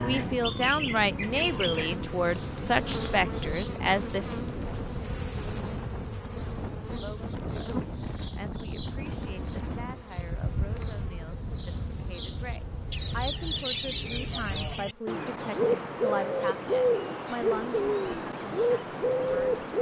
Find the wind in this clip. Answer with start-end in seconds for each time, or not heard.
0.0-14.8.